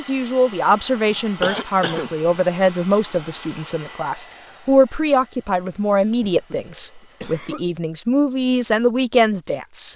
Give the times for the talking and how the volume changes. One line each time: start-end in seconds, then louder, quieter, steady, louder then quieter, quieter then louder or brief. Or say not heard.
0.0-9.9 steady.